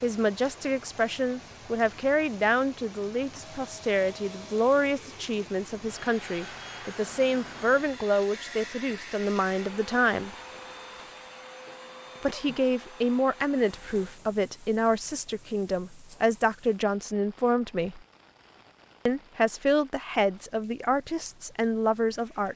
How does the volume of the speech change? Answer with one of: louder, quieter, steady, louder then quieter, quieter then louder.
steady.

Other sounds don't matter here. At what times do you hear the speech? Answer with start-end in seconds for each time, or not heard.
0.0-10.3, 12.2-18.0, 19.1-22.5.